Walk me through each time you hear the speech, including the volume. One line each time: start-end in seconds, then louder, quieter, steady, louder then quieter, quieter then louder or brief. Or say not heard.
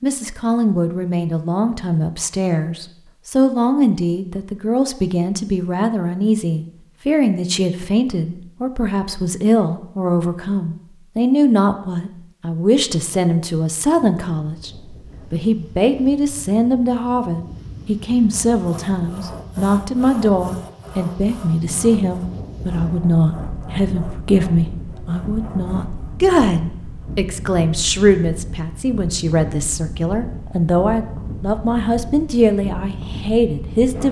0.0-34.0 steady.